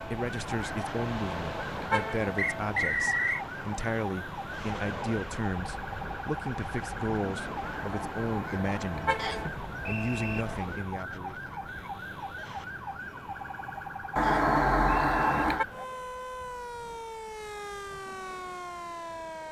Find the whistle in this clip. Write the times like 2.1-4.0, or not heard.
2.4-3.5, 9.2-10.4, 14.2-15.4.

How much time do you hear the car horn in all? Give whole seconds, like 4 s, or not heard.
5 s.